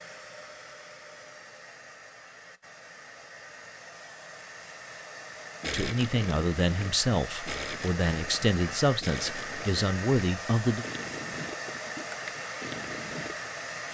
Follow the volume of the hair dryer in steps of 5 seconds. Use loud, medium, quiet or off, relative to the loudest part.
medium, loud, loud.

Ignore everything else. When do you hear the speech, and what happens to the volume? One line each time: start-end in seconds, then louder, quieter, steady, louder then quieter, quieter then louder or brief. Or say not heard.
5.7-10.8 steady.